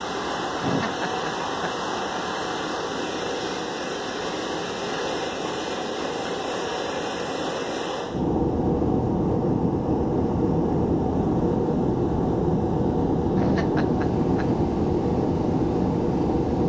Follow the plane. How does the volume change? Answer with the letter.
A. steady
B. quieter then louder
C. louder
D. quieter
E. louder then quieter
C.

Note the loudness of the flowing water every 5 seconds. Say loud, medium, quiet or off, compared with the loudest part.
loud, loud, quiet, quiet.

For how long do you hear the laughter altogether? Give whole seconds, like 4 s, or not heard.
3 s.